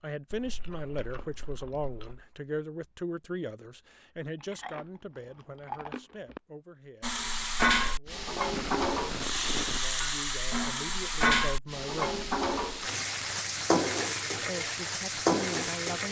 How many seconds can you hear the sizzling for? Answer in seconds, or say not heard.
9 s.